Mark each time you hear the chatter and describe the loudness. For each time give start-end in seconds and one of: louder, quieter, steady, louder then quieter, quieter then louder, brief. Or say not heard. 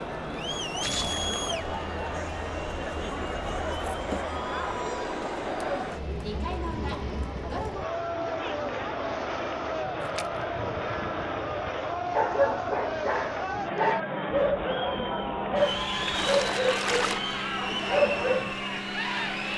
0.0-19.5 steady.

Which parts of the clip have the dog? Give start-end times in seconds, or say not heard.
12.1-18.6.